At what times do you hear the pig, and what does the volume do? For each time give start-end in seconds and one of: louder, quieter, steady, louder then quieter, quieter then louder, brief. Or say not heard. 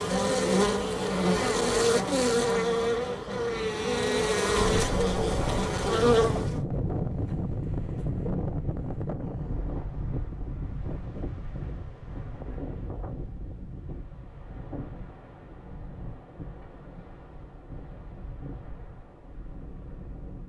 not heard.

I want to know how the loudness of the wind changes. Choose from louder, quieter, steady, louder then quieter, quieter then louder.
quieter.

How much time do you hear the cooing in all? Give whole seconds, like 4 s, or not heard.
not heard.